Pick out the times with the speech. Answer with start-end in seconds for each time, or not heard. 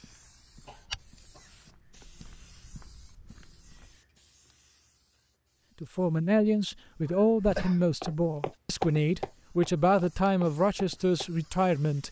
5.8-12.0.